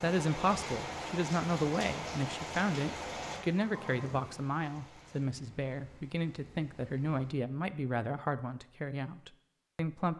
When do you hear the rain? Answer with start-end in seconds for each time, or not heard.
0.0-7.3.